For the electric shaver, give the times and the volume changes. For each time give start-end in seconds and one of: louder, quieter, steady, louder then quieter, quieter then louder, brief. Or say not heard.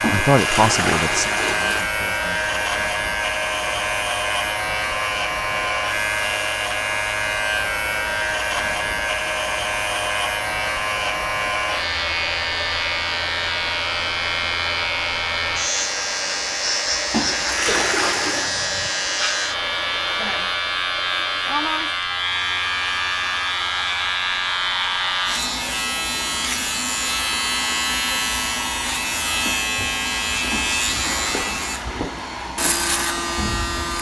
0.0-33.9 steady.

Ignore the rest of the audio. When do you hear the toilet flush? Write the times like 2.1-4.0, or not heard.
0.0-1.9, 17.1-18.5, 30.5-32.5.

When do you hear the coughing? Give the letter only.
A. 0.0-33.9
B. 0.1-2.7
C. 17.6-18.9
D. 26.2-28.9
C.